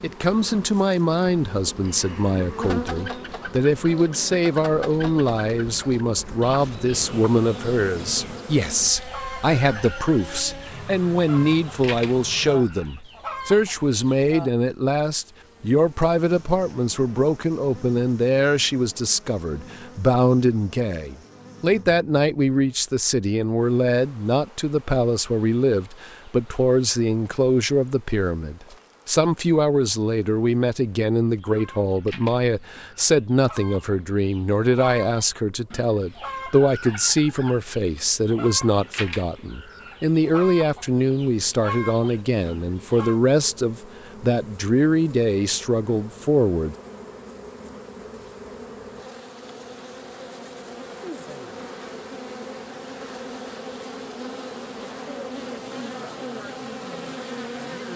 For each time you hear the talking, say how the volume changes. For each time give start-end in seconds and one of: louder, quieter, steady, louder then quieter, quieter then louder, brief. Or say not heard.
0.0-46.8 steady.